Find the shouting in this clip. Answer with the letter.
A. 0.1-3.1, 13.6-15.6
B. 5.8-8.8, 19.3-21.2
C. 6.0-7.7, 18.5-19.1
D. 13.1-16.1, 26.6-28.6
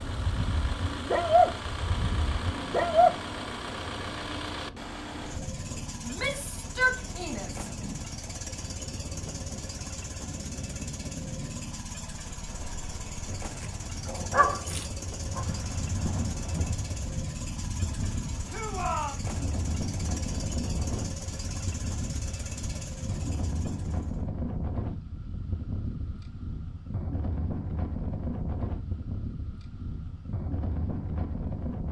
C.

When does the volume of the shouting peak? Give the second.
7 s.